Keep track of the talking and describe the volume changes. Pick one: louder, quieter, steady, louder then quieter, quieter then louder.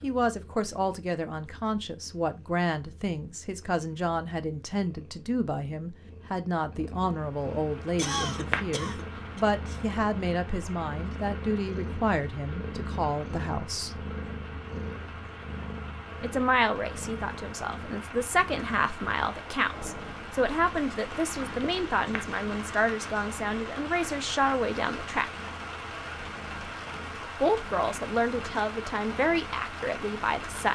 steady.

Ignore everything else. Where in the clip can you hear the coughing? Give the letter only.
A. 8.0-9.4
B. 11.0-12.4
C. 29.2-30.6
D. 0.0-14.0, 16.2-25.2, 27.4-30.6
A.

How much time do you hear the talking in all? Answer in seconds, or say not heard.
26 s.